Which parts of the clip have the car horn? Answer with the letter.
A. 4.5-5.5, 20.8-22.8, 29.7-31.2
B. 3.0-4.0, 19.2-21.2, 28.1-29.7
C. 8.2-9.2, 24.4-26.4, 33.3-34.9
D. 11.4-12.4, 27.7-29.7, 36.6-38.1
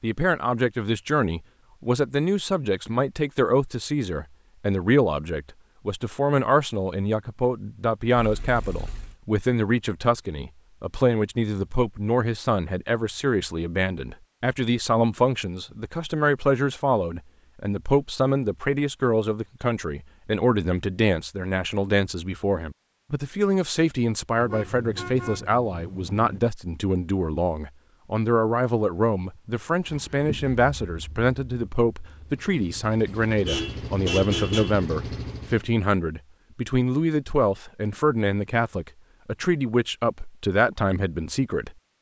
C.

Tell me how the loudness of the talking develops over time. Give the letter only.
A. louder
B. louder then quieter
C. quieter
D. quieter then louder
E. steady
E.